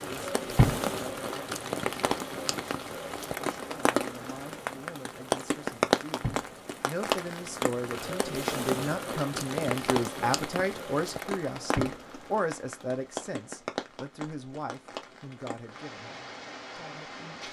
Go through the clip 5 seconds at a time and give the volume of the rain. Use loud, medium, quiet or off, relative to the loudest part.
loud, loud, medium, quiet.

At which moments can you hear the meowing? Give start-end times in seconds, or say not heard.
not heard.